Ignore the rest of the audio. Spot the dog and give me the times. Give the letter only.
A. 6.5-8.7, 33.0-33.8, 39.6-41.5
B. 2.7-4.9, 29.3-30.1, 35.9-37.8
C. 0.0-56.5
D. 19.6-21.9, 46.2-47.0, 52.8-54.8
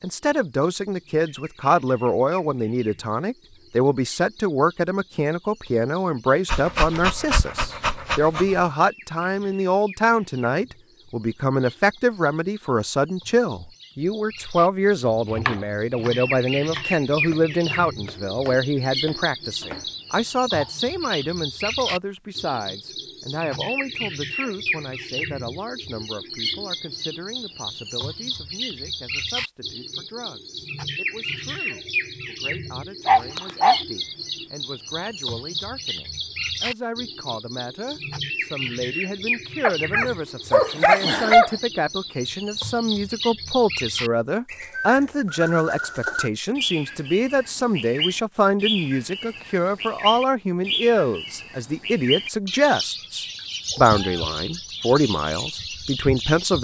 A.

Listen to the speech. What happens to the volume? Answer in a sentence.
The loudness of the speech goes down, then up.